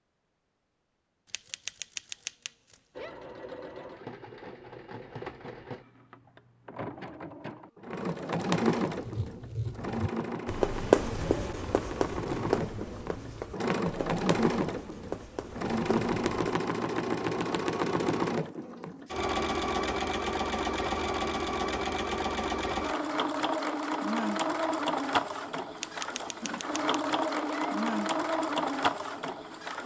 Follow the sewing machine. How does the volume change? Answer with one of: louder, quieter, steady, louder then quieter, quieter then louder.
louder.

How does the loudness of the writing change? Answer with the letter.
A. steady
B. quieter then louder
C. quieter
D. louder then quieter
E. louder
D.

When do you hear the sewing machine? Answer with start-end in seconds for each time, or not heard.
3.0-29.8.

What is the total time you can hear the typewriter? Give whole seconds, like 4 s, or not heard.
4 s.